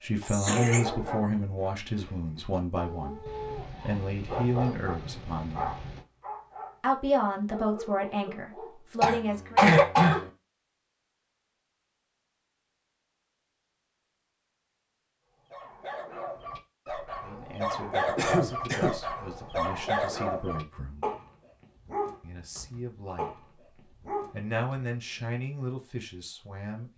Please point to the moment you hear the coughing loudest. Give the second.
10 s.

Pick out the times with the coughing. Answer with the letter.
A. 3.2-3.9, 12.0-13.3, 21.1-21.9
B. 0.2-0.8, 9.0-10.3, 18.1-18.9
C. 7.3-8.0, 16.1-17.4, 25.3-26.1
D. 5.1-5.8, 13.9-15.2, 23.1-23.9
B.